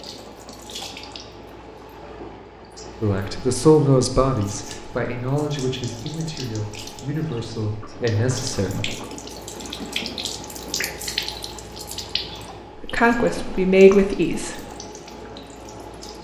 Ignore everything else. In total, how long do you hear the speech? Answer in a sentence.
The speech can be heard for 8 seconds in total.